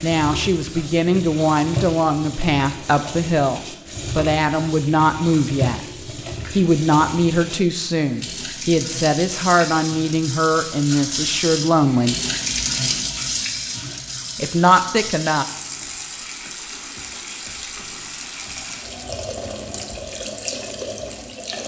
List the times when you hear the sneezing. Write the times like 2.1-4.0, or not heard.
not heard.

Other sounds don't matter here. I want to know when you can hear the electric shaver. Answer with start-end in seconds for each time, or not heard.
not heard.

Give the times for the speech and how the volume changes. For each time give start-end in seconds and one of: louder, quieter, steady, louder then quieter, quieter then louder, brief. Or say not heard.
0.0-5.8 steady
6.5-12.2 steady
14.3-15.4 brief.